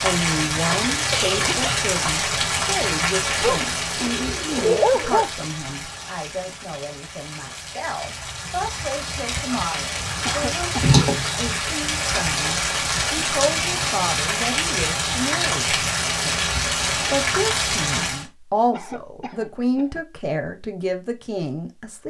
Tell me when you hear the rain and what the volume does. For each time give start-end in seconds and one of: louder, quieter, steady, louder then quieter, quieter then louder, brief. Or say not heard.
0.0-18.2 quieter then louder.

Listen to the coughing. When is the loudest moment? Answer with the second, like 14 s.
1 s.